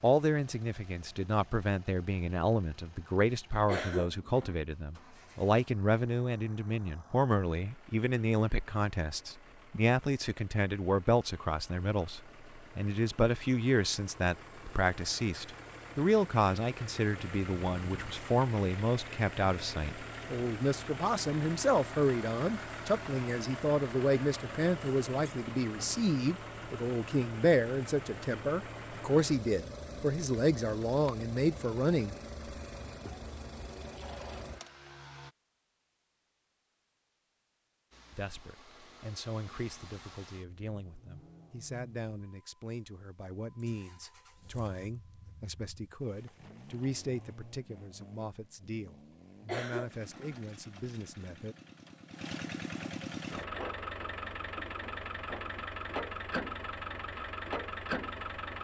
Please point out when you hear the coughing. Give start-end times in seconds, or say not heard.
3.6-4.5, 49.5-50.4.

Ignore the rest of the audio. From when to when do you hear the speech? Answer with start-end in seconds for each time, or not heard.
0.0-32.1, 38.1-51.5.